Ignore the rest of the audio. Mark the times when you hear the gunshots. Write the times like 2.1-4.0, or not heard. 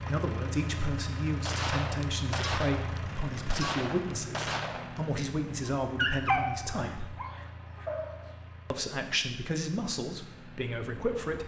1.4-5.1.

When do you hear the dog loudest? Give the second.
6 s.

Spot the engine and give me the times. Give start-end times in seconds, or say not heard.
0.0-11.4.